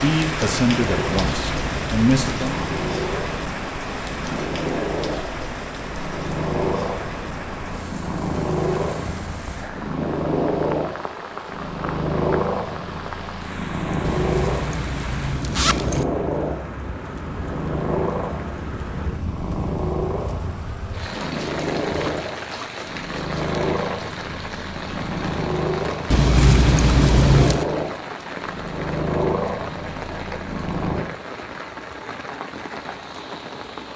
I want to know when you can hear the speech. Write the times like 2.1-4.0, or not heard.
0.0-2.6.